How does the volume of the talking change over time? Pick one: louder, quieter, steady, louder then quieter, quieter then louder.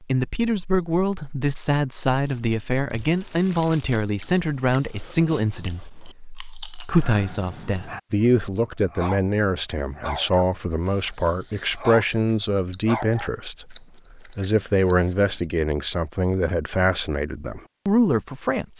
steady.